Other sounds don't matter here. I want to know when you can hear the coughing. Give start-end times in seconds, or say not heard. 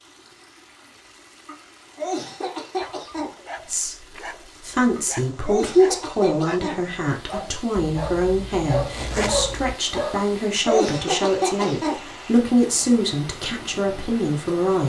1.4-3.3, 5.0-6.8, 10.2-12.0.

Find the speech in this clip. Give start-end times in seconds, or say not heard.
3.6-14.8.